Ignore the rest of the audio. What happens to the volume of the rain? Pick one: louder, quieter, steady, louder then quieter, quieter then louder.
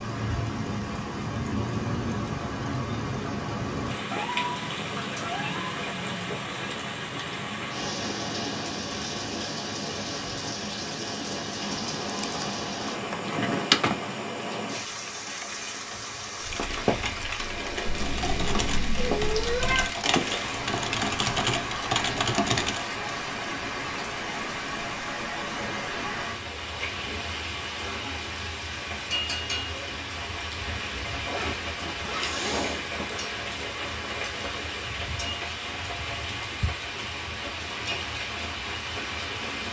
steady.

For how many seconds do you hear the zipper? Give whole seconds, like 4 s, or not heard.
2 s.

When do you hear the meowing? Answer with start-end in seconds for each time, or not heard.
4.1-5.8, 17.9-19.9, 32.0-32.9.